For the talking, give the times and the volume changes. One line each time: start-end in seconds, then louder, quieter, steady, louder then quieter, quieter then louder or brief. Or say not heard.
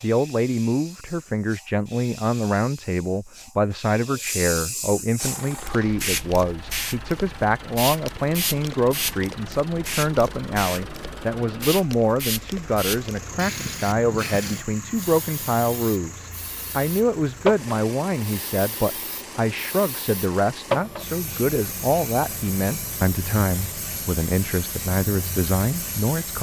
0.0-26.3 steady.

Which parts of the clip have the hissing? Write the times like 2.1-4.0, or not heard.
0.0-26.3.